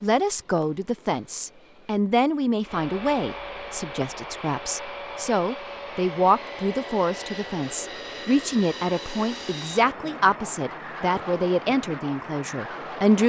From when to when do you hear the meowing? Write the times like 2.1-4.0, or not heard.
not heard.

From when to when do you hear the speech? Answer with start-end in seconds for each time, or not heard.
0.0-13.2.